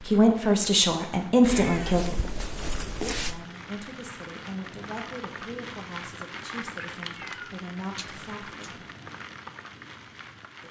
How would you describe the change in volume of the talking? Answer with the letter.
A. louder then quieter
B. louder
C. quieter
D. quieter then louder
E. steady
C.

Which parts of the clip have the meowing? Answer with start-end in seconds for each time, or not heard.
1.4-3.4, 6.8-8.7.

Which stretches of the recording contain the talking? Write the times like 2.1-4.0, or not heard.
0.0-8.8.